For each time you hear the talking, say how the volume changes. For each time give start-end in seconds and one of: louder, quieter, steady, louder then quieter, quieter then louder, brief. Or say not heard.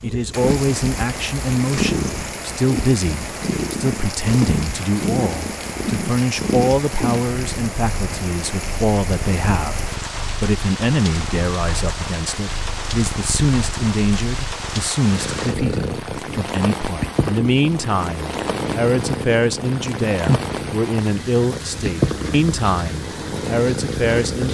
0.0-24.4 steady.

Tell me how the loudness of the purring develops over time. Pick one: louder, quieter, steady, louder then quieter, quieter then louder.
quieter then louder.